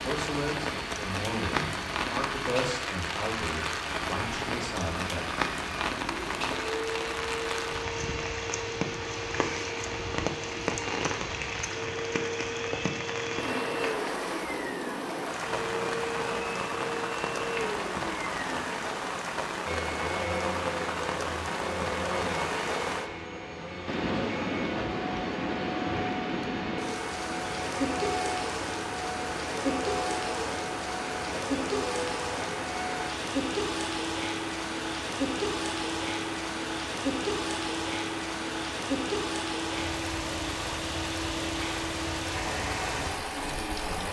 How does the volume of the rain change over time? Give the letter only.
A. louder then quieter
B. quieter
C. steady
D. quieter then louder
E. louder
C.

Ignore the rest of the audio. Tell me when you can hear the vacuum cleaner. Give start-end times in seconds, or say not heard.
0.0-44.0.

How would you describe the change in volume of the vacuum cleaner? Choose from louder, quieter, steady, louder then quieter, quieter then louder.
steady.